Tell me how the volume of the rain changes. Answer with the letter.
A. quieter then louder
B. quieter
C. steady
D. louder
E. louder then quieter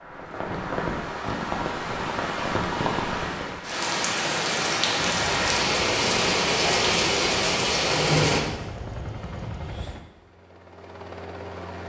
D.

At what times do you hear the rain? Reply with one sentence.
The rain can be heard from 0.0 to 8.4 s.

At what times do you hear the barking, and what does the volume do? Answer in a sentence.
You can't hear the barking here.